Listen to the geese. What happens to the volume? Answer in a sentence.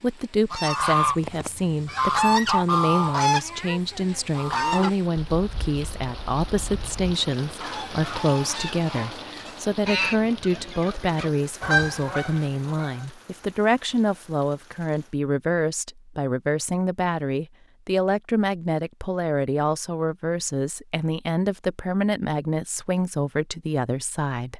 The volume of the geese goes down, then up.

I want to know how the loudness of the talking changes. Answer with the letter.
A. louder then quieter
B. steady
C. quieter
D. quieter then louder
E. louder
B.